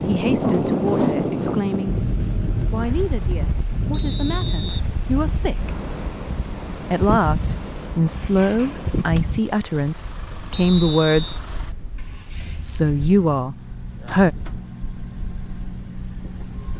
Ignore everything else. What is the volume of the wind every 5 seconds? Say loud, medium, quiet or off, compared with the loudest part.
loud, medium, quiet, quiet.